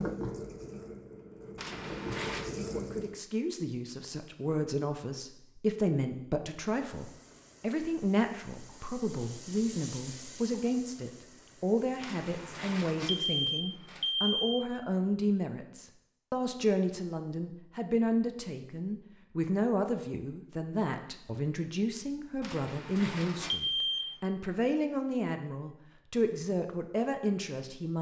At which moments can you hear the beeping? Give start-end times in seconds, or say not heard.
1.6-2.5, 12.0-14.6, 22.4-24.1.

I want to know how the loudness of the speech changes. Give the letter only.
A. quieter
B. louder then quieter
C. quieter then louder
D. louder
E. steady
E.